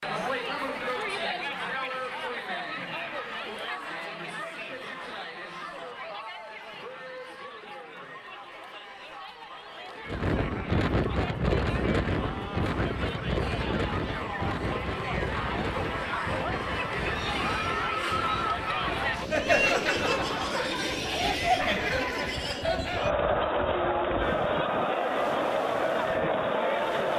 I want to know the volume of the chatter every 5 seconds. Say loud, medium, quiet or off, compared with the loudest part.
medium, quiet, medium, loud, loud, loud.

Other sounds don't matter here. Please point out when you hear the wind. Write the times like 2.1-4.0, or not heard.
10.1-27.1.